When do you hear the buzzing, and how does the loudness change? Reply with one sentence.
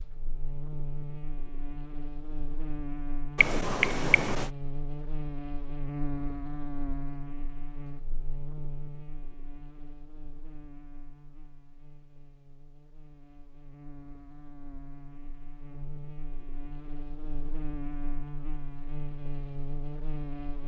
The buzzing can be heard from 0.0 to 20.6 s, getting quieter then louder.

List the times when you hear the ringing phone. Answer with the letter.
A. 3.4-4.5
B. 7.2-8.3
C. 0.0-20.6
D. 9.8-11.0
A.